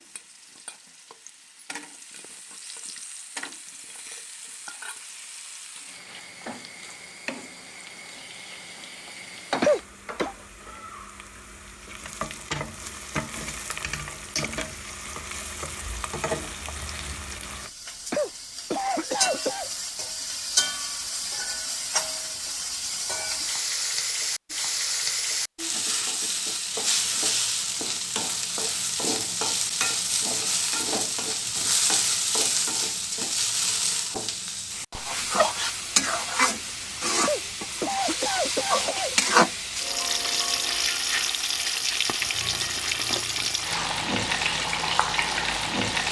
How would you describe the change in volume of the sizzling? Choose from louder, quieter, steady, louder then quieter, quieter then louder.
louder.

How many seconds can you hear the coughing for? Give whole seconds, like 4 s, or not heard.
4 s.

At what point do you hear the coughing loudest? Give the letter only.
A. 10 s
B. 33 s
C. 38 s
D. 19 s
A.